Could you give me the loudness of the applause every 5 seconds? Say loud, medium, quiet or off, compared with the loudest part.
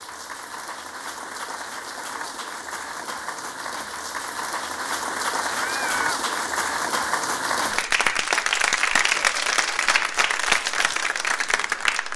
medium, loud, loud.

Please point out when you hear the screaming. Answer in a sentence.
The screaming can be heard from 5.5 to 6.2 s.